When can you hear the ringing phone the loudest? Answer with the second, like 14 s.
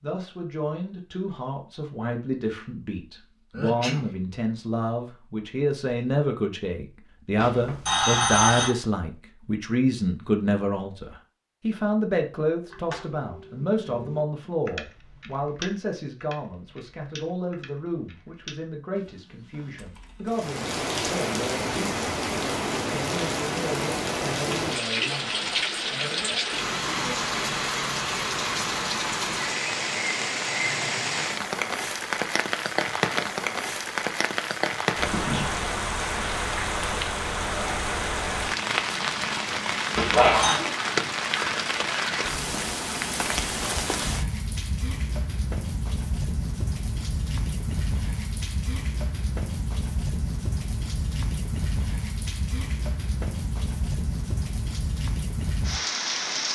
8 s.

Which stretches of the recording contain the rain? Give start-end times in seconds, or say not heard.
20.2-56.4.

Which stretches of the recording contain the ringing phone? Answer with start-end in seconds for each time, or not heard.
7.3-8.7, 40.0-40.6.